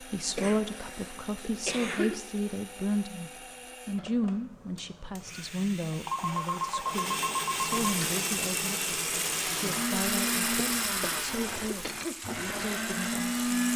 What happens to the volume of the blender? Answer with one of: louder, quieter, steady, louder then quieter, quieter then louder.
louder.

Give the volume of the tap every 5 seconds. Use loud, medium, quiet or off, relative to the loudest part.
off, loud, loud.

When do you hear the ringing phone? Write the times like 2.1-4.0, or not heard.
6.0-8.0.